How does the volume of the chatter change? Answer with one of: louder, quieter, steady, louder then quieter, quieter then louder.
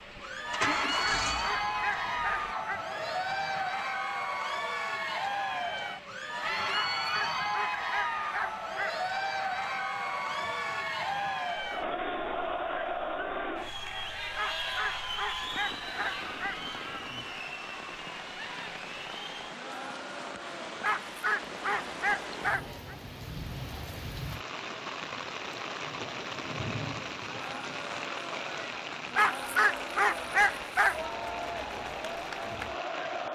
quieter then louder.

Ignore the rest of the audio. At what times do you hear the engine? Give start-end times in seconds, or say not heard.
0.1-2.5.